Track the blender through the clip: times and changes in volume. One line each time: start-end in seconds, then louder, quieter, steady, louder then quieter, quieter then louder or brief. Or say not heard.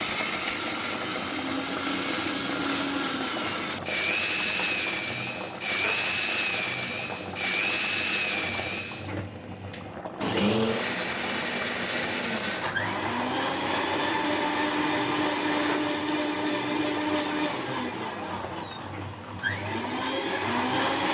0.0-21.0 steady.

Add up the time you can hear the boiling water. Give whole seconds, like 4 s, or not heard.
21 s.